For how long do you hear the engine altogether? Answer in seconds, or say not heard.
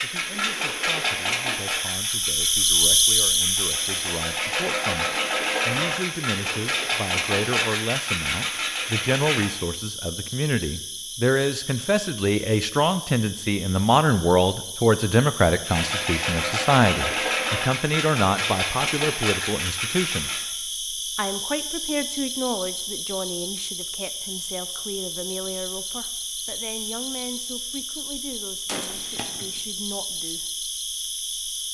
14 s.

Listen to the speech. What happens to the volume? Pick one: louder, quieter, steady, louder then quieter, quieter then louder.
louder then quieter.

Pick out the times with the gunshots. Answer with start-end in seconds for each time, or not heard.
28.6-29.6.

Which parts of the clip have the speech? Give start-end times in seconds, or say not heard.
0.0-20.4, 21.1-30.5.